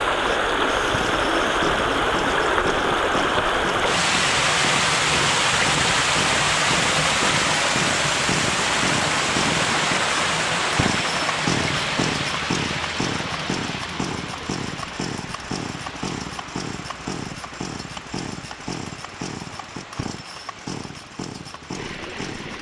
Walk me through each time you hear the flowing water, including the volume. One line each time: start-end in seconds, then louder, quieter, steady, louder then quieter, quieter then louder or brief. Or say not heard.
0.0-22.5 quieter.